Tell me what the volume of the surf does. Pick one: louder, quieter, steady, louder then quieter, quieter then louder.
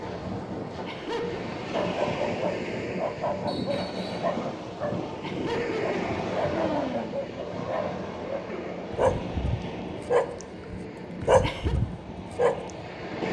quieter.